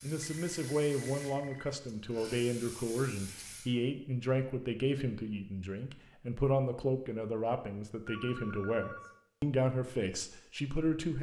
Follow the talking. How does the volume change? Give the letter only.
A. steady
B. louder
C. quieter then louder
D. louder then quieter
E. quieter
A.